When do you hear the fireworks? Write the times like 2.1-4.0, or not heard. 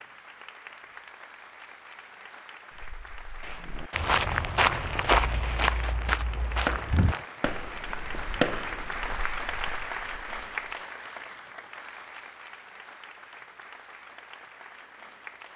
3.4-9.2.